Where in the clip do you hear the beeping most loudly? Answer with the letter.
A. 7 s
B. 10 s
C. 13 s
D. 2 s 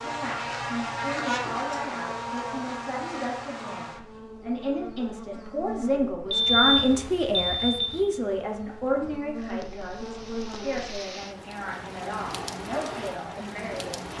A.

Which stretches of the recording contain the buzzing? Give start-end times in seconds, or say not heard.
0.0-11.1.